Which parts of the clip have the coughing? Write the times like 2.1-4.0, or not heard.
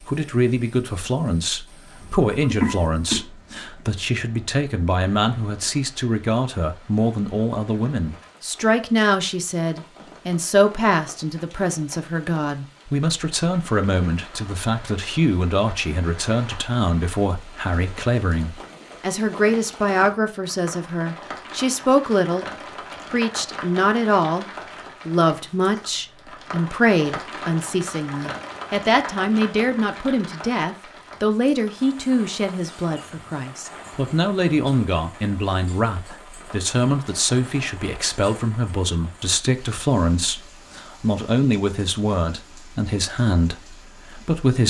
2.0-3.2.